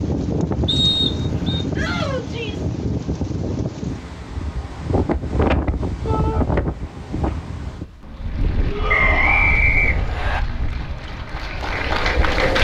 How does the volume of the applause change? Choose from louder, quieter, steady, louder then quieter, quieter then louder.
louder.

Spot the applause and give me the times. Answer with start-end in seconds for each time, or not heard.
8.1-12.6.